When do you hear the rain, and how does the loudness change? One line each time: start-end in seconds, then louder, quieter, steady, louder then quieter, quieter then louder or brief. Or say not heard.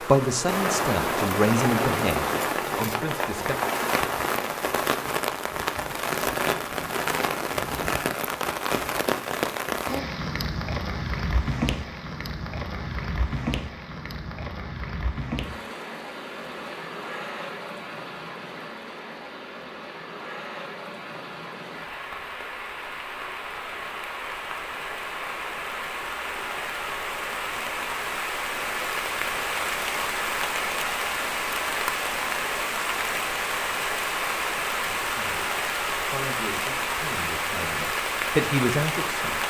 0.0-39.4 quieter then louder.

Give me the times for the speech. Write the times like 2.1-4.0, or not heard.
0.0-3.5, 35.0-39.4.